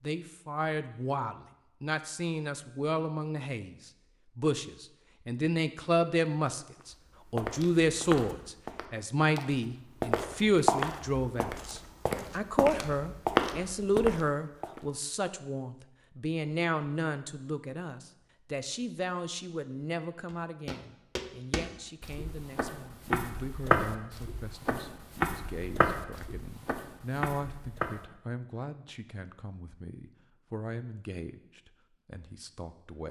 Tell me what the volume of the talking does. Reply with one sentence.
The volume of the talking goes down.